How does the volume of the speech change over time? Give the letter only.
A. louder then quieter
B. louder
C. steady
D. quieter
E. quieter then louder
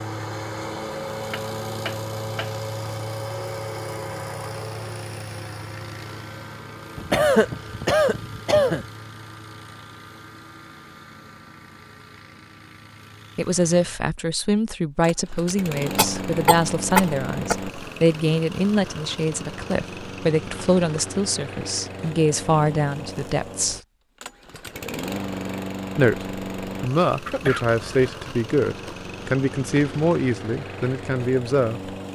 C.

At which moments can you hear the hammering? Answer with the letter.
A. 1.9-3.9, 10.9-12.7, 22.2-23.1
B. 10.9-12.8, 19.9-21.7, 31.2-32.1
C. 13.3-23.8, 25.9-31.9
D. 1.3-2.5
D.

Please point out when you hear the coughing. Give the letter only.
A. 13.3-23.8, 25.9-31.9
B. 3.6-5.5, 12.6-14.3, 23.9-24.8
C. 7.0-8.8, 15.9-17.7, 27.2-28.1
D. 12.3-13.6
C.